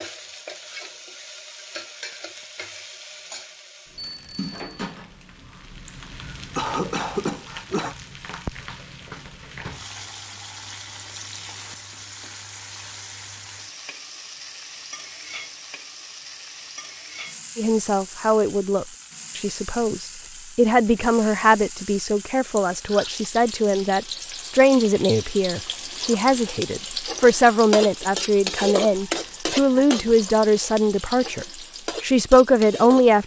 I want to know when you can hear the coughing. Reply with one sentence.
The coughing can be heard from 5.8 to 8.0 s and from 22.6 to 23.1 s.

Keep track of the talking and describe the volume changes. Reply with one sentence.
The loudness of the talking stays about the same.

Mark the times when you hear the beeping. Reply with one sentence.
You can hear the beeping from 4.0 to 4.8 s.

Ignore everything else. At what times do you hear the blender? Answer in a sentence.
The blender can't be heard in this clip.